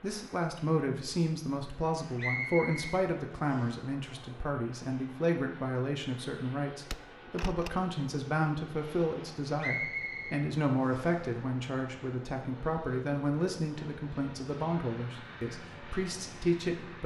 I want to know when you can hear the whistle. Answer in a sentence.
You can hear the whistle from 2.1 to 3.8 s and from 9.6 to 11.2 s.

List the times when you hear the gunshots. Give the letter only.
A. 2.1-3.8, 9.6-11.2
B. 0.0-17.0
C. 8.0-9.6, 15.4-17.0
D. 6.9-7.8
D.